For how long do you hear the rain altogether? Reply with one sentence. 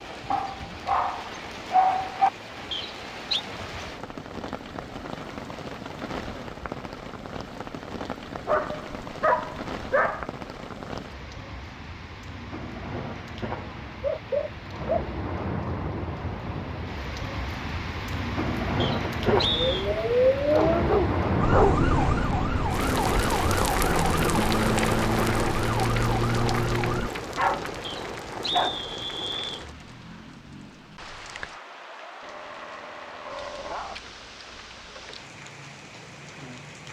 You can hear the rain for 37 seconds altogether.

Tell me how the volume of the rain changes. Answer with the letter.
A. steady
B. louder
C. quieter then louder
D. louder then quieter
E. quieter
D.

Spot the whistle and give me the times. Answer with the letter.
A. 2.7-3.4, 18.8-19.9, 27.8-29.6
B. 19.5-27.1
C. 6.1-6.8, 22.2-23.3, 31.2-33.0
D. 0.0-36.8
A.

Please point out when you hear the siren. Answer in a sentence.
The siren can be heard from 19.5 to 27.1 s.